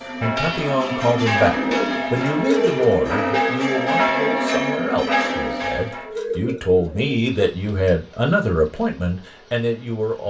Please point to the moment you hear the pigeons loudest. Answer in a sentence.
The volume of the pigeons peaks at 3 seconds.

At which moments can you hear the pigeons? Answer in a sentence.
The pigeons can be heard from 1.5 to 3.5 s and from 5.2 to 7.2 s.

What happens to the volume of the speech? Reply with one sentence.
The volume of the speech goes down, then up.